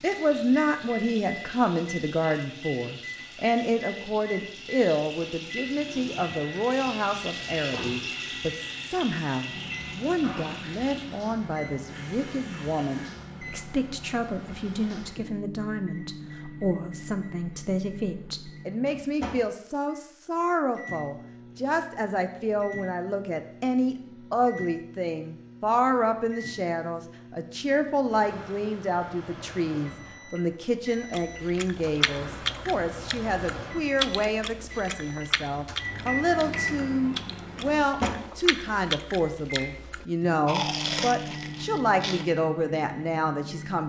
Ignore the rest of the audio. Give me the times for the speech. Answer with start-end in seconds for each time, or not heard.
0.0-43.8.